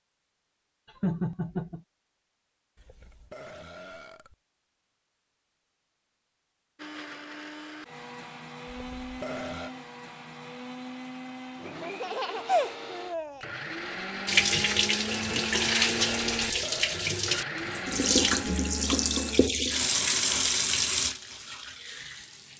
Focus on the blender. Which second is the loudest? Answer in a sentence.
The loudest moment of the blender is at 16 seconds.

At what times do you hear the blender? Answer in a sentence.
You can hear the blender from 6.8 to 19.5 s.